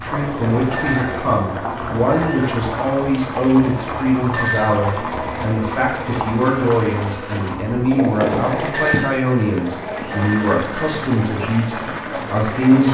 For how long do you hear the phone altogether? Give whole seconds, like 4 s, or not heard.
5 s.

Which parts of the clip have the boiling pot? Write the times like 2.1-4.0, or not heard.
0.0-12.8.